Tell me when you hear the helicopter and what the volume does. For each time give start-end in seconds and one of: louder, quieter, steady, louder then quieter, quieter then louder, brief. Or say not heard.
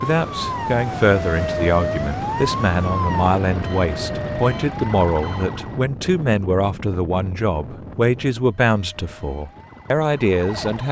not heard.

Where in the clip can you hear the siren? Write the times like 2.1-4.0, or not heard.
0.0-5.9, 8.4-10.8.